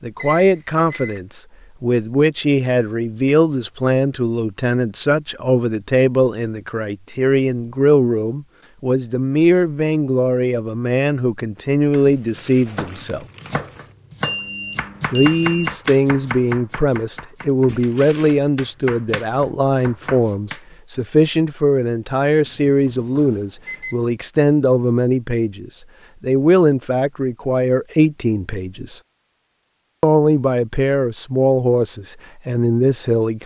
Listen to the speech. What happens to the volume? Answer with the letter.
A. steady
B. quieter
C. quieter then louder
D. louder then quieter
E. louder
A.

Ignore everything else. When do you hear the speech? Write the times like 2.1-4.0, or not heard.
0.0-13.2, 15.1-29.0, 30.0-33.4.